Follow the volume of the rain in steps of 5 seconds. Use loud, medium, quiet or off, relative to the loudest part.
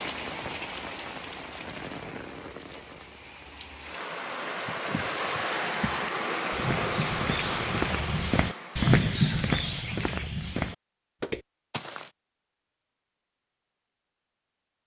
medium, loud, off.